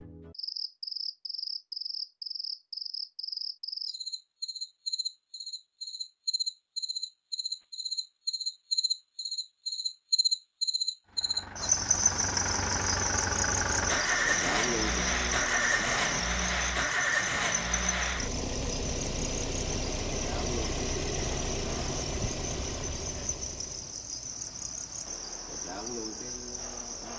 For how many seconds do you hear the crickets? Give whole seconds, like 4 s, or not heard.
27 s.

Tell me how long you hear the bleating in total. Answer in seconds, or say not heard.
not heard.